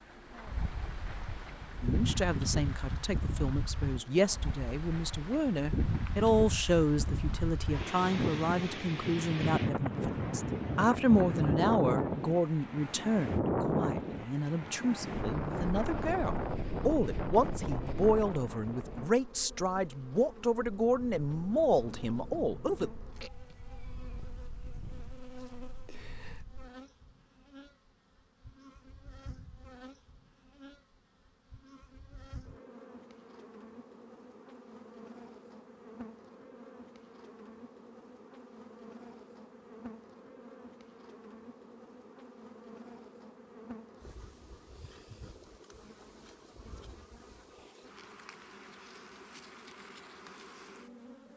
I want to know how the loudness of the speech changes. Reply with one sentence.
The loudness of the speech stays about the same.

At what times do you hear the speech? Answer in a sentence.
You can hear the speech from 1.8 to 22.9 s.